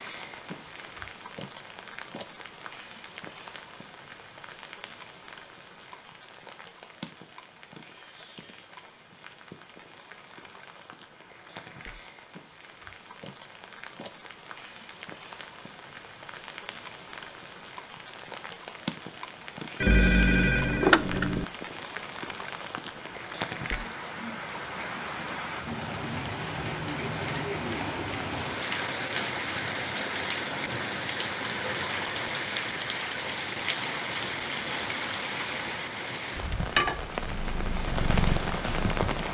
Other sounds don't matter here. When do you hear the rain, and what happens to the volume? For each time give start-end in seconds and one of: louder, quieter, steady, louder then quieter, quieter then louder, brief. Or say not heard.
0.0-39.2 louder.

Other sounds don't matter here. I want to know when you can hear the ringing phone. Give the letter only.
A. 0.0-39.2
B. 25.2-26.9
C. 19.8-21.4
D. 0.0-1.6
C.